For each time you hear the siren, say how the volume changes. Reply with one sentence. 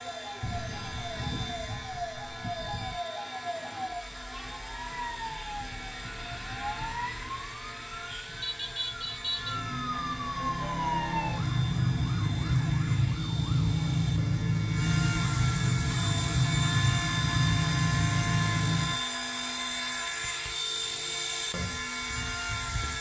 The siren can be heard from 0.0 to 19.0 s, getting louder.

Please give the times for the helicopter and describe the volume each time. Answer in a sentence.
You can hear the helicopter from 0.0 to 22.9 s, getting louder.